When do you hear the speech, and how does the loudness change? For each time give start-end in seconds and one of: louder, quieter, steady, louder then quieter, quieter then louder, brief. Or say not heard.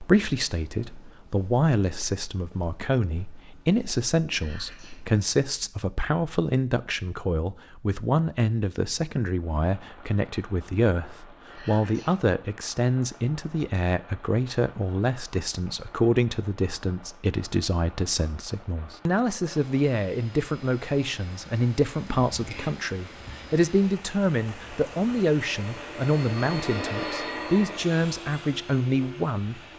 0.0-29.6 steady.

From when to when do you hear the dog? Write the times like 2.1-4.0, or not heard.
not heard.